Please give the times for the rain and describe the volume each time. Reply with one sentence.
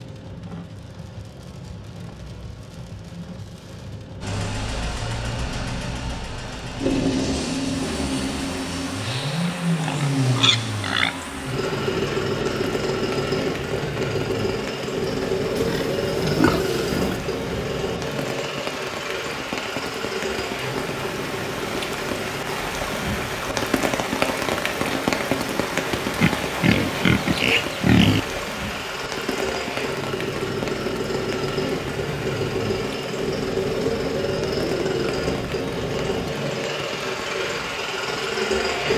The rain can be heard from 0.0 to 38.8 s, getting louder then quieter.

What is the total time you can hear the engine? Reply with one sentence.
The engine can be heard for 35 seconds in total.